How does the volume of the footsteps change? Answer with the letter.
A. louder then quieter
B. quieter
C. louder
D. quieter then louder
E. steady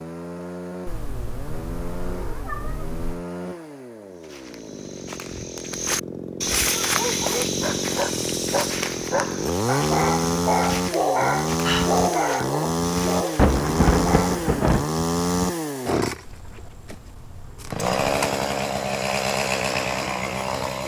A.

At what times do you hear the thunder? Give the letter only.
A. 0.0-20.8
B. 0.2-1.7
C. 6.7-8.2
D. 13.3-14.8
D.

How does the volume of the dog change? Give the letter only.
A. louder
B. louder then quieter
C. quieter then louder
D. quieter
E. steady
B.